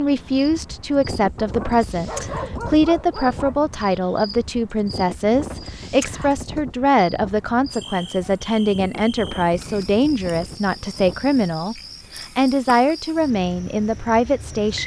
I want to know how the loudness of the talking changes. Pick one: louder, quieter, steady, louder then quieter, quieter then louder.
steady.